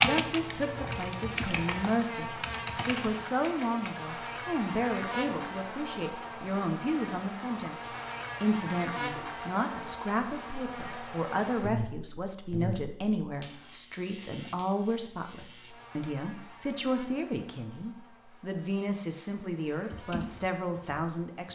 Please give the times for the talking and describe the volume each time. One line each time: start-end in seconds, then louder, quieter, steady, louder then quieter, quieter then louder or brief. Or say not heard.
0.0-21.5 steady.